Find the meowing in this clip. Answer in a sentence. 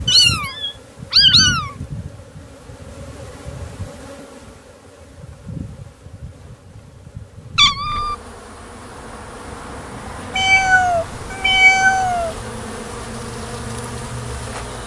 The meowing can be heard from 0.1 to 1.8 s, from 7.5 to 8.2 s and from 10.3 to 12.3 s.